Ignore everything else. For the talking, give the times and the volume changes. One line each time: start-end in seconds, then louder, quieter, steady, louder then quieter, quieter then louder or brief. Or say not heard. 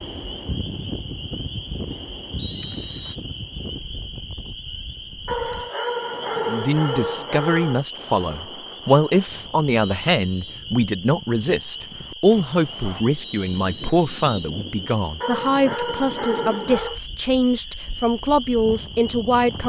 6.5-19.6 steady.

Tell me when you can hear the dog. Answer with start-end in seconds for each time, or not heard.
5.2-7.8, 15.2-17.0.